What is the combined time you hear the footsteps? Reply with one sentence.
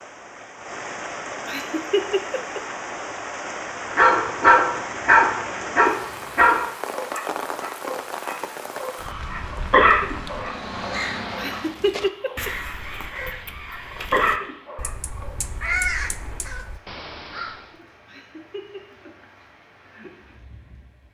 The footsteps can't be heard in this clip.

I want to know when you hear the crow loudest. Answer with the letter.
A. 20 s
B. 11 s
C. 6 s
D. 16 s
D.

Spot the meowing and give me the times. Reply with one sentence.
You can't hear the meowing here.